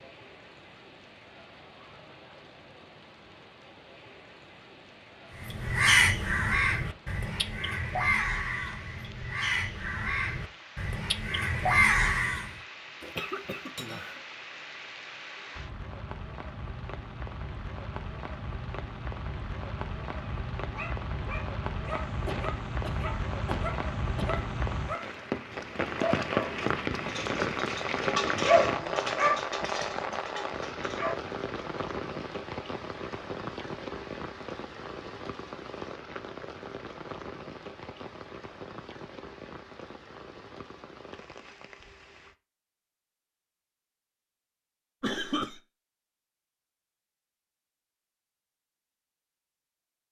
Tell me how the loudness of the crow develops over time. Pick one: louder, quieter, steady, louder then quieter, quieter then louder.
quieter then louder.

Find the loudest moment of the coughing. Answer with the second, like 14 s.
45 s.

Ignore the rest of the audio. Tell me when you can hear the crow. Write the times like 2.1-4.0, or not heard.
5.4-12.5.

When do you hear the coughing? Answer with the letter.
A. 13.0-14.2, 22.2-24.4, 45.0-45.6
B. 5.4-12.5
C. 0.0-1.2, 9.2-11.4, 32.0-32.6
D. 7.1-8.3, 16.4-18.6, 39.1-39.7
A.